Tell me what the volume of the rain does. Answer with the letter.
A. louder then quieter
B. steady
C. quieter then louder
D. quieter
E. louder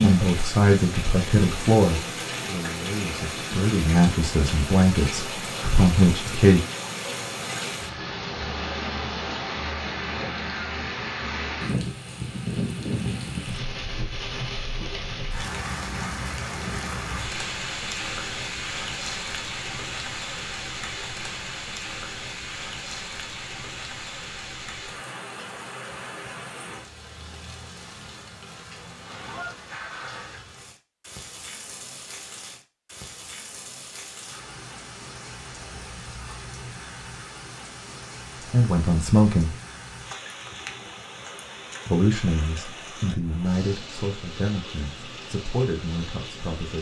D.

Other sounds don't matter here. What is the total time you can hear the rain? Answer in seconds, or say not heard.
47 s.